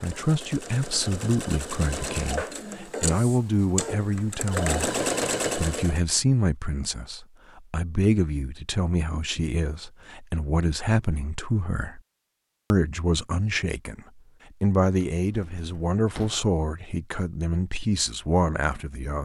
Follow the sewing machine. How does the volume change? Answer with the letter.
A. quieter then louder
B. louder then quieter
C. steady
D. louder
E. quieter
D.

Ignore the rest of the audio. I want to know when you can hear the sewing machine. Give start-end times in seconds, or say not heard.
0.0-6.0.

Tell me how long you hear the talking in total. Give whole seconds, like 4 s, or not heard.
18 s.